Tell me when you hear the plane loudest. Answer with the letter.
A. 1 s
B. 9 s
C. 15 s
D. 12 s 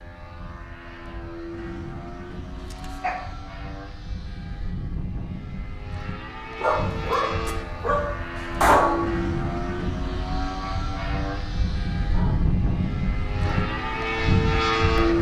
C.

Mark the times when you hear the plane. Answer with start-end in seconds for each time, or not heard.
0.0-15.1.